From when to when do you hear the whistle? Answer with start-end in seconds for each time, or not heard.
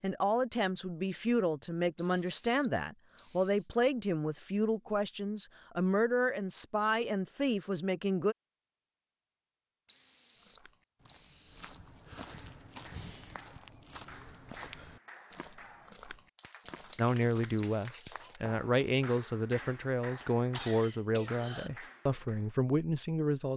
1.9-3.7, 9.8-12.6, 16.9-17.7.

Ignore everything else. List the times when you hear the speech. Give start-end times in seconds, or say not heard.
0.0-8.3, 16.9-23.5.